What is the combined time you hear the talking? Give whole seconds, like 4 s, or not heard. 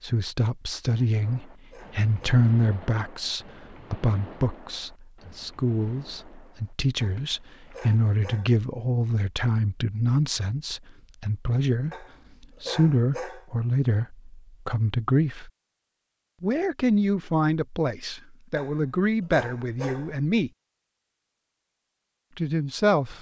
20 s.